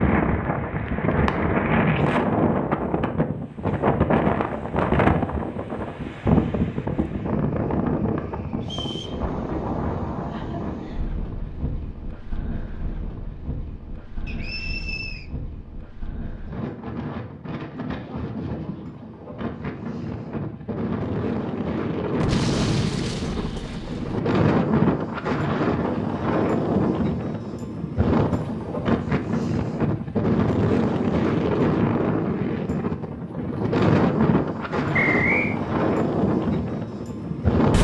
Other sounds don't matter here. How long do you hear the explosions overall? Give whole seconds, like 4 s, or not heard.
2 s.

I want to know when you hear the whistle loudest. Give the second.
35 s.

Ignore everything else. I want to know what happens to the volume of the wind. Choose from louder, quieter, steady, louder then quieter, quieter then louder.
quieter then louder.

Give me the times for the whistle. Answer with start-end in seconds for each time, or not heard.
8.6-9.2, 14.2-15.2, 34.9-35.5.